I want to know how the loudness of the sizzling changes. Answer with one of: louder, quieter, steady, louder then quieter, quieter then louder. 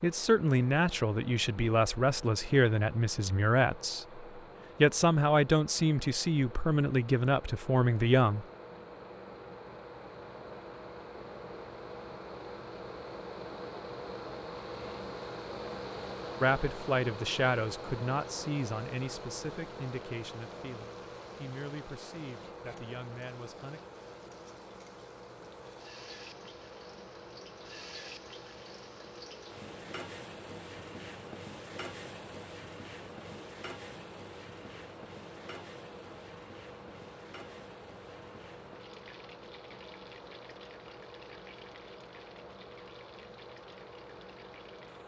louder then quieter.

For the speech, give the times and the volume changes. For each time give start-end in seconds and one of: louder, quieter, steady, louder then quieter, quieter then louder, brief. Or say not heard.
0.0-8.4 steady
16.4-23.8 quieter.